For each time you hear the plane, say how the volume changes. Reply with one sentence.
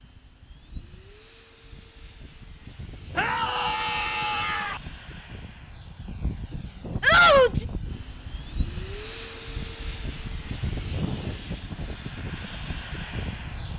You can hear the plane from 0.0 to 13.7 s, getting louder.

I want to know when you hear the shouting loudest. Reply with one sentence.
The loudest moment of the shouting is at 7 seconds.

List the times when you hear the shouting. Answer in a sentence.
The shouting can be heard from 3.1 to 4.8 s and from 7.0 to 7.7 s.